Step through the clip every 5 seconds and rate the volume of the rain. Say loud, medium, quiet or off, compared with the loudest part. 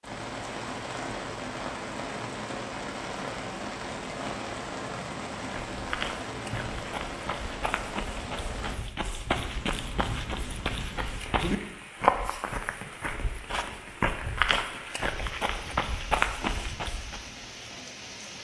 loud, loud, medium, medium.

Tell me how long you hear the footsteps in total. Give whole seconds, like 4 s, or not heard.
12 s.